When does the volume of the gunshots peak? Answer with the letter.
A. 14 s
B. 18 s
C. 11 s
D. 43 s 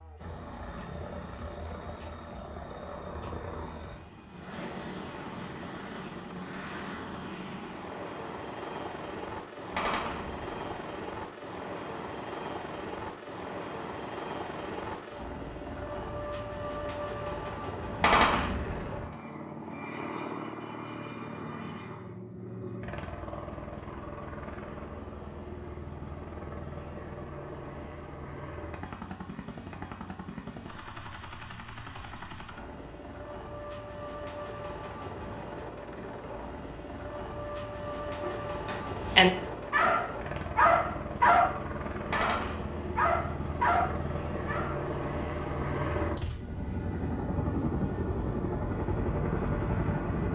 B.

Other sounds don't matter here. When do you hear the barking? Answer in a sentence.
You can hear the barking from 38.2 to 44.8 s.